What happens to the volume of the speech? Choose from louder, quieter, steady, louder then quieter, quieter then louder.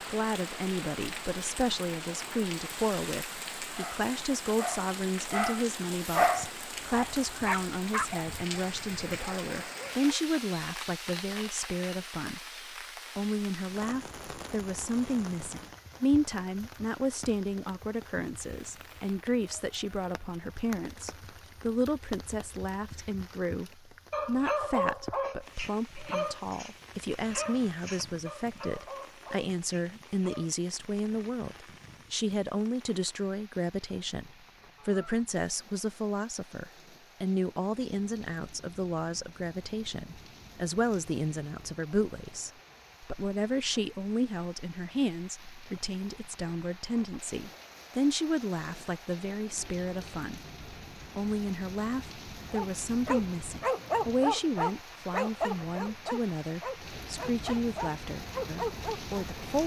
steady.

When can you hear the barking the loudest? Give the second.
6 s.